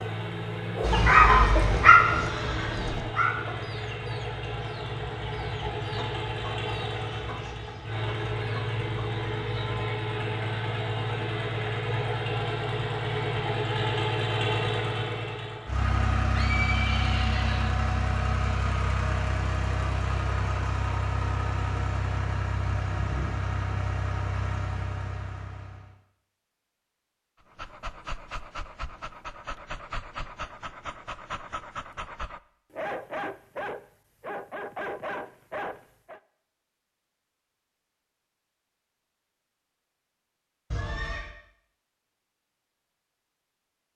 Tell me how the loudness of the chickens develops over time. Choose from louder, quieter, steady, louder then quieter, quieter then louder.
quieter.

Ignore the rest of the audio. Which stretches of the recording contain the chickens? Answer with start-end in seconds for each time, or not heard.
0.8-9.8.